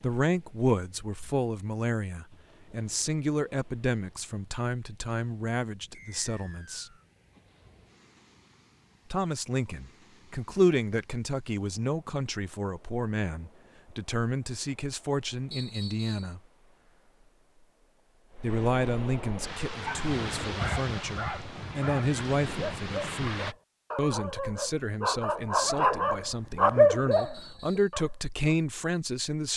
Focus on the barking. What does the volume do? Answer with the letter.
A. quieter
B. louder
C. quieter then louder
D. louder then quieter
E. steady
B.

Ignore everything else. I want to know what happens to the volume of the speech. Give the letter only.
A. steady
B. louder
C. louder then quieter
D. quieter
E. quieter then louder
A.